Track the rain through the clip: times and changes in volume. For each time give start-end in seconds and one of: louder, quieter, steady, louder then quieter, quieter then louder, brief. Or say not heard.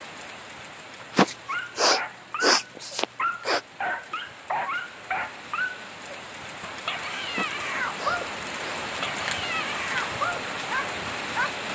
0.0-11.7 louder.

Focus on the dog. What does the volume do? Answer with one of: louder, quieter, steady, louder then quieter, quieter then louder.
steady.